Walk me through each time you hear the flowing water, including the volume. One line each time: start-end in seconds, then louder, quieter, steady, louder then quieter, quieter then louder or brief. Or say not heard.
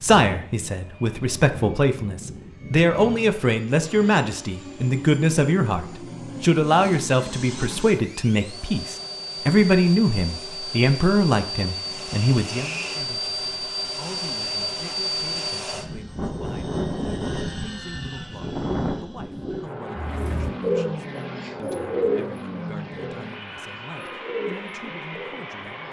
not heard.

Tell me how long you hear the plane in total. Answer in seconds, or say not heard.
26 s.